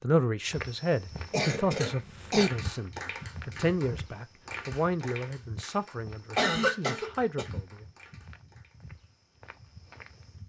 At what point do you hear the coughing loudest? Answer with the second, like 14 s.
7 s.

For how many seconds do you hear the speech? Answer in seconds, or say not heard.
8 s.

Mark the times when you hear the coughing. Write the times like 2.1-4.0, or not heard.
1.3-2.5, 6.3-7.5.